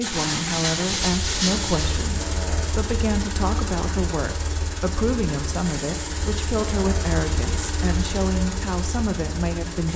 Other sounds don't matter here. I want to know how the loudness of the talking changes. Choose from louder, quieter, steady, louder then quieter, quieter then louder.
steady.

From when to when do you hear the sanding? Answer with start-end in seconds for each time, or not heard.
0.0-2.0.